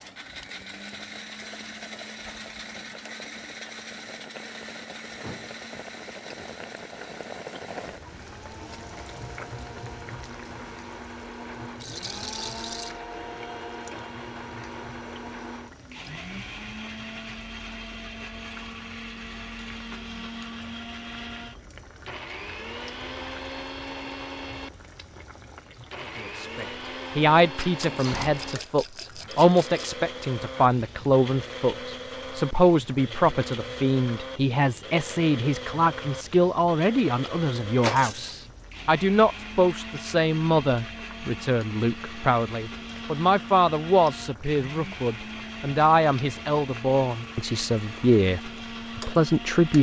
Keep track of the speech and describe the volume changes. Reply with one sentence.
The volume of the speech stays about the same.